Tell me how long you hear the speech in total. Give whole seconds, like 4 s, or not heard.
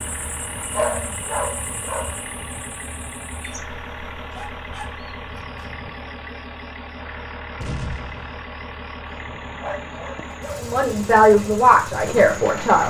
2 s.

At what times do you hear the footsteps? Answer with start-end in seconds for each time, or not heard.
not heard.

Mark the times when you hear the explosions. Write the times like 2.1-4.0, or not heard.
7.6-8.4.